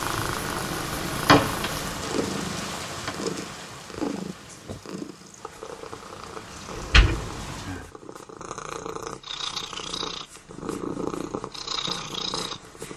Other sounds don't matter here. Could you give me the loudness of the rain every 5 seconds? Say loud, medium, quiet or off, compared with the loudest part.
loud, medium, off.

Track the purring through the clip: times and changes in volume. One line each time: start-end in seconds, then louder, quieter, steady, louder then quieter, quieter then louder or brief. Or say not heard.
0.0-12.9 quieter then louder.